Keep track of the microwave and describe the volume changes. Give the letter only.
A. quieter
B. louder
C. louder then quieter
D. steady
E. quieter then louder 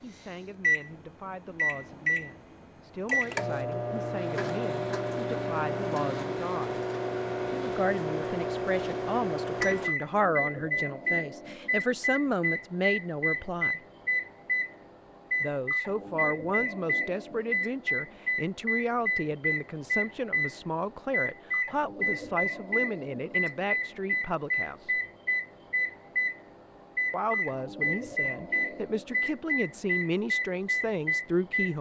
D.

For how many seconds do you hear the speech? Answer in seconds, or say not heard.
27 s.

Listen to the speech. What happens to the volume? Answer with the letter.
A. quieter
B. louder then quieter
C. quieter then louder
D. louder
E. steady
D.